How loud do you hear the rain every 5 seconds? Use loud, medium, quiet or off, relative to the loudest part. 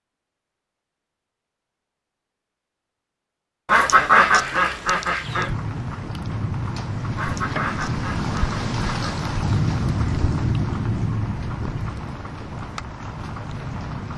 off, loud, loud.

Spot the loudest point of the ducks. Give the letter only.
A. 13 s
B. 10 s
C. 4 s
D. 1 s
C.